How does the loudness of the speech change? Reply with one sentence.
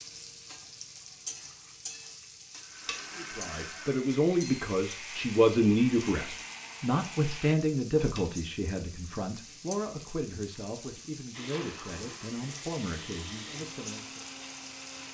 The loudness of the speech goes down.